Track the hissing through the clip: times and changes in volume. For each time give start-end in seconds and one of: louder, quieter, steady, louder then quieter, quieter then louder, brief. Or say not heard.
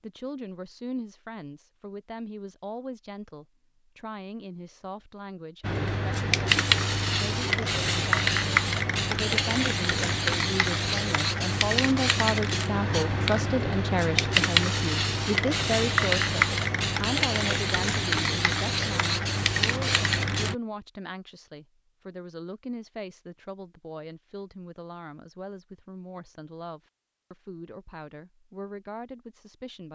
5.6-20.6 steady.